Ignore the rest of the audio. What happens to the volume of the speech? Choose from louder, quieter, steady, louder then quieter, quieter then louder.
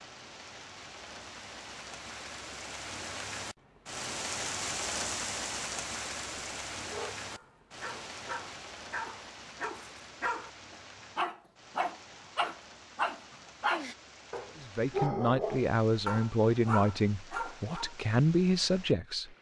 quieter then louder.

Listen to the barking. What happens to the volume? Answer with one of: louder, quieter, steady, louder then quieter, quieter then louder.
louder.